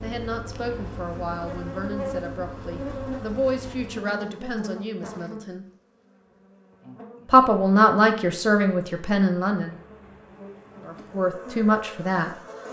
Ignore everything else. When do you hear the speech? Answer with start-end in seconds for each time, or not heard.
0.0-5.7, 7.2-9.8, 10.8-12.3.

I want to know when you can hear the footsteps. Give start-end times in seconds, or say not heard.
not heard.